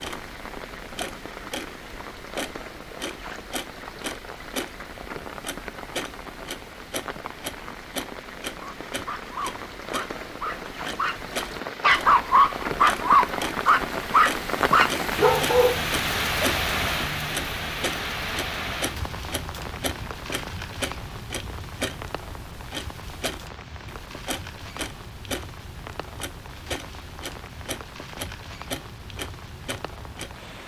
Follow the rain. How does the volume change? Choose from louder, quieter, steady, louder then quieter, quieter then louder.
louder then quieter.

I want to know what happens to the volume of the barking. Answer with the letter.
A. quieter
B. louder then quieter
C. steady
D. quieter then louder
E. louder
E.